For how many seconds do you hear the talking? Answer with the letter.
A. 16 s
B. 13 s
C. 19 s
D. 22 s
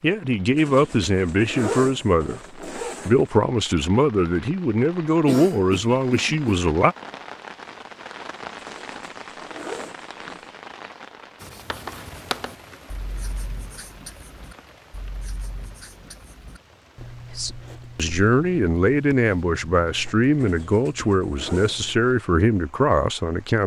B.